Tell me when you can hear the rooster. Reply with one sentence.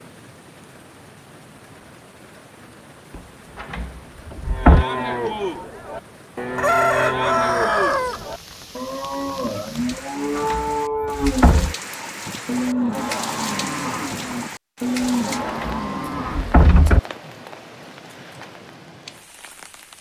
The rooster can be heard from 6.5 to 8.2 s.